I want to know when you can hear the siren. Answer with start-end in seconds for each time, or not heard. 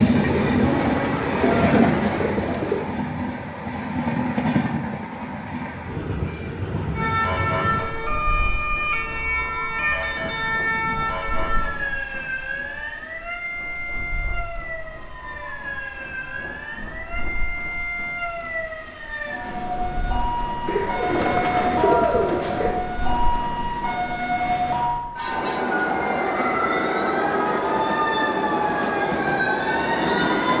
6.9-30.5.